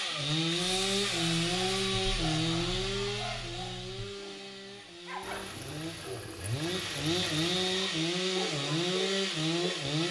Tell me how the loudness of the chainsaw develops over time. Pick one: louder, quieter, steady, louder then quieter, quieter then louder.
quieter then louder.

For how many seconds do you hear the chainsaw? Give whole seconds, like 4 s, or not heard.
10 s.